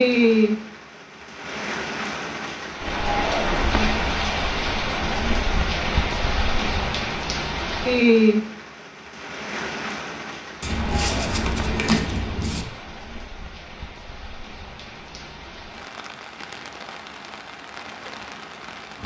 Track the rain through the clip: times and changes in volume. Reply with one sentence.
You can hear the rain from 0.0 to 19.0 s, getting quieter.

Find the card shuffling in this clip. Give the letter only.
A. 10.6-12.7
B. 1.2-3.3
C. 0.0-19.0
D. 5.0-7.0
A.